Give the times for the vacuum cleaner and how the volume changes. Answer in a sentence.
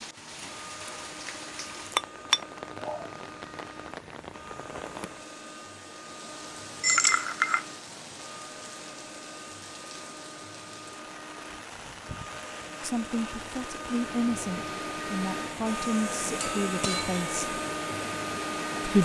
The vacuum cleaner can be heard from 0.0 to 19.0 s, getting louder.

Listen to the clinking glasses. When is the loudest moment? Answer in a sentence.
The loudest moment of the clinking glasses is at 7 seconds.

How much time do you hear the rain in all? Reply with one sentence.
The rain can be heard for 19 seconds in total.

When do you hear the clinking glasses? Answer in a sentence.
You can hear the clinking glasses from 1.9 to 3.0 s, from 6.8 to 7.7 s and from 16.4 to 17.3 s.